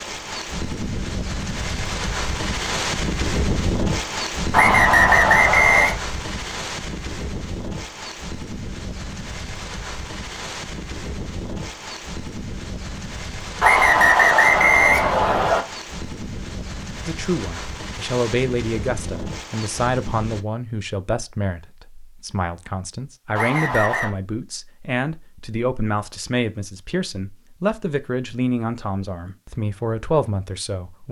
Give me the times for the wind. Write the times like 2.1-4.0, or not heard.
0.0-20.4.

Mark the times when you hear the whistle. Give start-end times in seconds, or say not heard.
4.5-6.0, 13.6-15.6, 23.4-24.1.